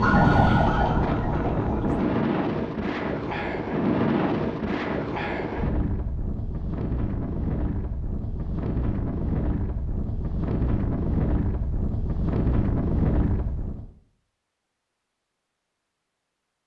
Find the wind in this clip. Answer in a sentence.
You can hear the wind from 0.0 to 13.9 s.